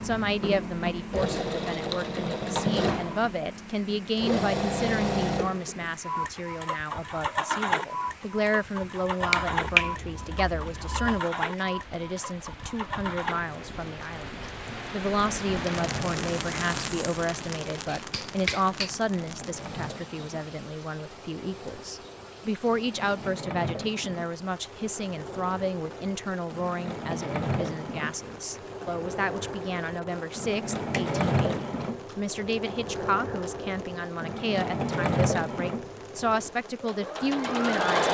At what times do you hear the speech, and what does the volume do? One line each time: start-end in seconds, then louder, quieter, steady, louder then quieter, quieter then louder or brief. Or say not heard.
0.0-38.0 steady.